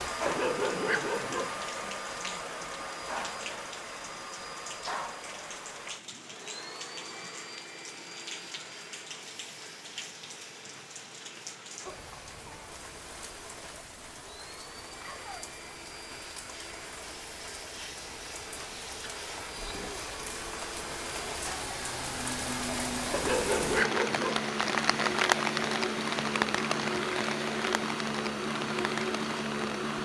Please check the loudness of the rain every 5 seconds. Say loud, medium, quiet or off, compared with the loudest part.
quiet, quiet, quiet, quiet, loud, loud.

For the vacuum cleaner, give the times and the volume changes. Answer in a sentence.
You can hear the vacuum cleaner from 0.0 to 29.9 s, getting quieter then louder.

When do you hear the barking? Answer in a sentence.
The barking can be heard from 0.2 to 1.6 s and from 23.1 to 24.4 s.